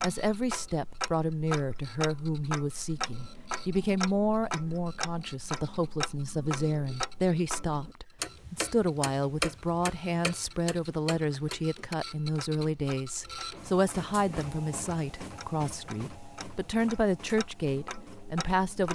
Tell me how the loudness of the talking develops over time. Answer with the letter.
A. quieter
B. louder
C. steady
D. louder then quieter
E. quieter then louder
C.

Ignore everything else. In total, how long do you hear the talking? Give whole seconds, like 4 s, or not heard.
19 s.